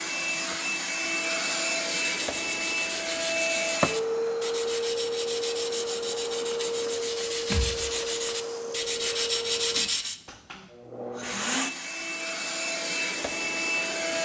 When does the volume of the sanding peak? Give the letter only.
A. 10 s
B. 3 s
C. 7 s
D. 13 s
A.